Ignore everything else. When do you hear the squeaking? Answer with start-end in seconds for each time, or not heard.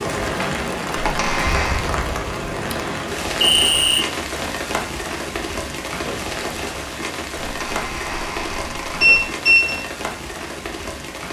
1.0-1.9, 7.5-9.3.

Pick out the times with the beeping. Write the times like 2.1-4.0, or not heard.
3.5-4.0, 9.0-9.8.